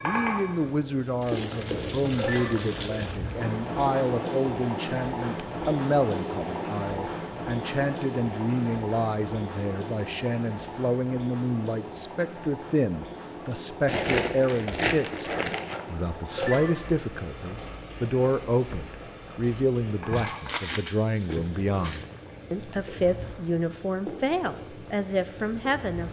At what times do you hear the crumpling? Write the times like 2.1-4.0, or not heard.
1.2-3.2, 13.8-15.8, 20.1-22.1.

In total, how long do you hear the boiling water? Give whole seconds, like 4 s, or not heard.
26 s.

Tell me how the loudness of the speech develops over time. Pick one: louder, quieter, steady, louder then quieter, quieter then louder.
steady.